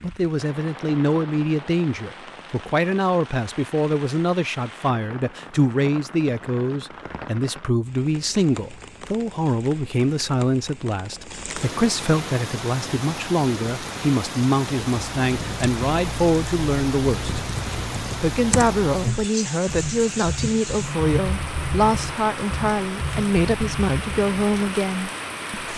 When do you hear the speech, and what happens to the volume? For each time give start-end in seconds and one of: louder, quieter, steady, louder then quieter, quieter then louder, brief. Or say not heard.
0.0-17.4 steady
18.2-25.7 steady.